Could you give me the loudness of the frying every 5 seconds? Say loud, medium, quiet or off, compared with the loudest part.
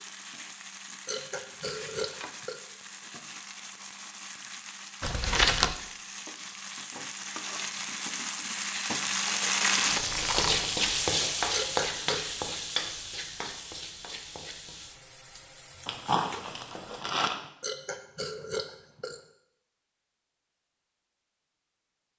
quiet, loud, loud, quiet, off.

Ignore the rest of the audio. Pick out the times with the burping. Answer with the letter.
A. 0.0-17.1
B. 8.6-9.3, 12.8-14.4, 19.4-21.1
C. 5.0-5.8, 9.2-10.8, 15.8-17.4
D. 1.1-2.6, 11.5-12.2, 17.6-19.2
D.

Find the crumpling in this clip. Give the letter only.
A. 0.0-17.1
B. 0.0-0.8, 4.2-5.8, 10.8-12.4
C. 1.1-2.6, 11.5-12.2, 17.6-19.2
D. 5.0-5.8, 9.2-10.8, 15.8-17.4
D.